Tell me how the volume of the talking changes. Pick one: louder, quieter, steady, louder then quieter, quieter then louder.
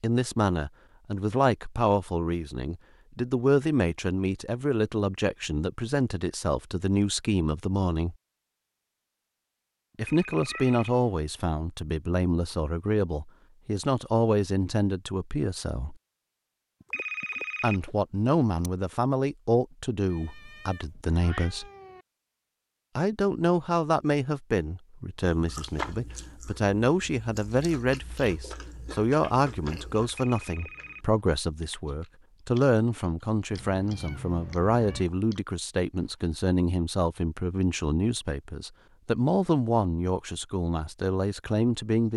steady.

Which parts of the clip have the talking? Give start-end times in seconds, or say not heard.
0.0-8.2, 9.9-15.9, 17.6-21.6, 22.9-42.1.